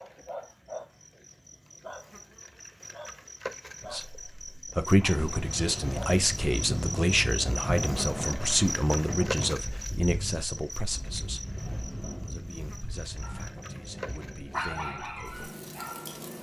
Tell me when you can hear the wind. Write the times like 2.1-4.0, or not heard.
5.1-16.3.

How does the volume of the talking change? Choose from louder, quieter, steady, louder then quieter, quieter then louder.
quieter.